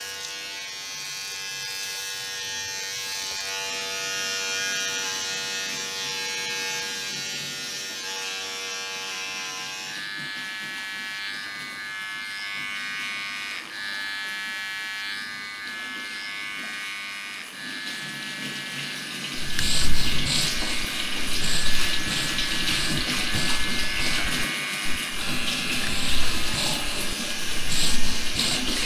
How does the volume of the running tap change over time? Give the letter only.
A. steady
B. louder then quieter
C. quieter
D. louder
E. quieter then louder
D.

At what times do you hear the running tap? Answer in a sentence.
You can hear the running tap from 0.0 to 28.8 s.